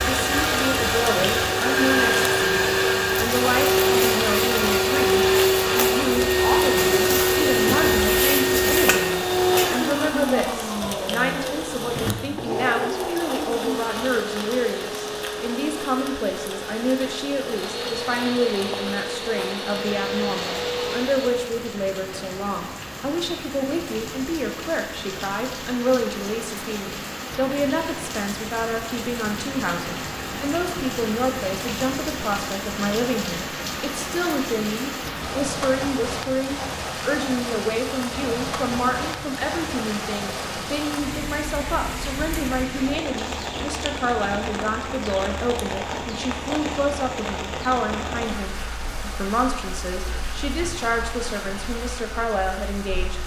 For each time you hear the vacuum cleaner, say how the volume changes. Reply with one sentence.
The vacuum cleaner can be heard from 0.0 to 21.5 s, getting quieter.